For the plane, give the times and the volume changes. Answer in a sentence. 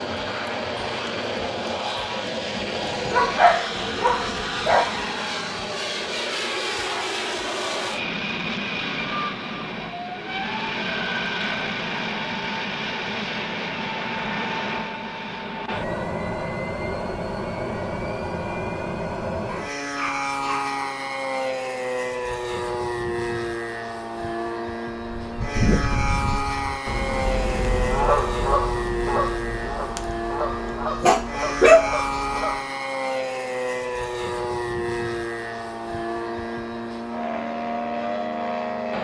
The plane can be heard from 0.0 to 38.9 s, at a steady volume.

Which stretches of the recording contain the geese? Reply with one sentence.
The geese can be heard from 24.9 to 32.6 s.